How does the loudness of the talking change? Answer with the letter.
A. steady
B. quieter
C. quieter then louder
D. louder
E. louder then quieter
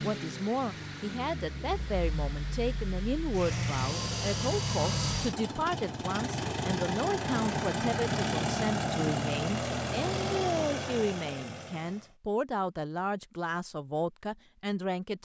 A.